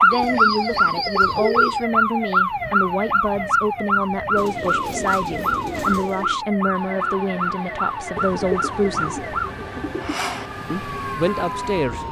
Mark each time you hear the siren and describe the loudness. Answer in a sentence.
The siren can be heard from 0.0 to 12.0 s, getting quieter.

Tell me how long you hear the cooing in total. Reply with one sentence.
The cooing can be heard for 6 seconds in total.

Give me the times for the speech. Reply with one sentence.
You can hear the speech from 0.0 to 9.3 s and from 10.7 to 12.0 s.